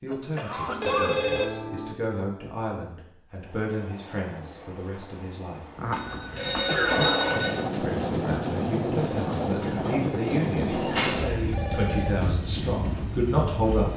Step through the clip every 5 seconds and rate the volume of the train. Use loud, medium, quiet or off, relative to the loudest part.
quiet, loud, loud.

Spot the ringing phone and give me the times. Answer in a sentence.
You can hear the ringing phone from 0.7 to 1.9 s, from 5.9 to 7.5 s and from 10.9 to 12.2 s.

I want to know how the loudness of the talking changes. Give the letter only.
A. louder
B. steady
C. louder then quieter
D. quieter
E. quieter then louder
A.